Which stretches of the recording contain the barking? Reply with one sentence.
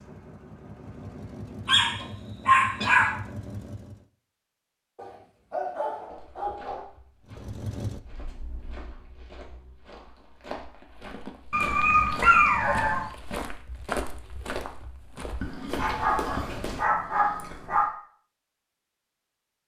The barking can be heard from 1.6 to 3.1 s, from 5.0 to 6.8 s, from 11.5 to 13.1 s and from 15.4 to 17.9 s.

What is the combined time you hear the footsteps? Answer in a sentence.
The footsteps can be heard for 11 seconds in total.